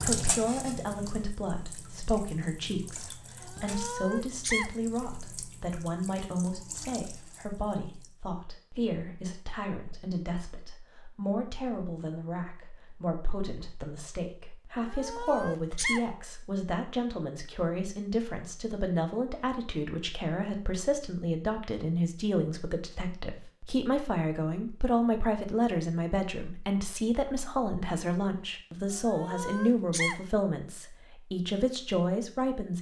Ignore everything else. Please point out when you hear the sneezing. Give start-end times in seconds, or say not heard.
3.4-4.7, 14.8-16.1, 28.9-30.2.